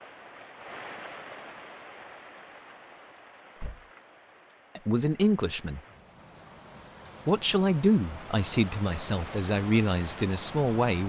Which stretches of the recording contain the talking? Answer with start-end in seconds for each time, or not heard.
4.8-5.8, 7.2-11.0.